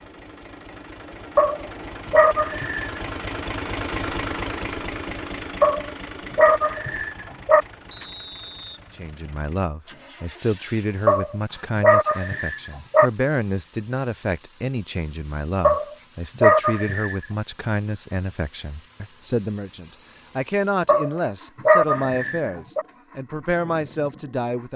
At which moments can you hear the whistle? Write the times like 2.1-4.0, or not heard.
7.9-8.8.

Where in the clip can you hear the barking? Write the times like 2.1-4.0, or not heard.
1.4-3.0, 5.6-7.7, 11.1-13.1, 15.6-17.1, 20.9-22.9.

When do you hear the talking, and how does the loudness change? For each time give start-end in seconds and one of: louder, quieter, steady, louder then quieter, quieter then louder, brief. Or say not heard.
8.9-24.7 steady.